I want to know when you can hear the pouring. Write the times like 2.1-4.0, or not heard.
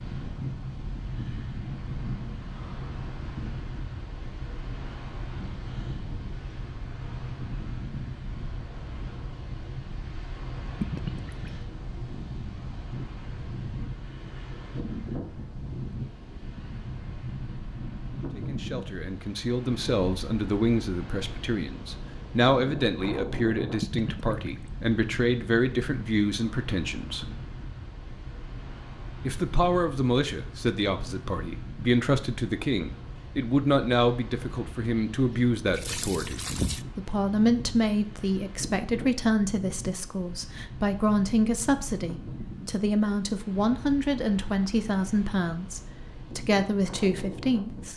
10.8-11.5, 23.8-24.7, 35.8-36.8.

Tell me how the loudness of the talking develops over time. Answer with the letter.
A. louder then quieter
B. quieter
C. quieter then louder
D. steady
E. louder
D.